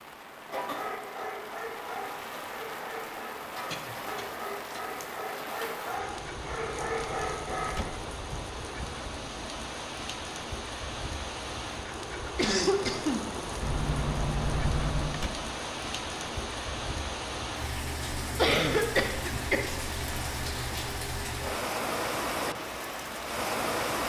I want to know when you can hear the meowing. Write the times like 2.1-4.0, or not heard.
not heard.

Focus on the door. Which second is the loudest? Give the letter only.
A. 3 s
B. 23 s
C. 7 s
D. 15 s
D.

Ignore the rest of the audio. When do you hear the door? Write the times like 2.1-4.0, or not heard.
6.2-8.1, 13.6-15.3.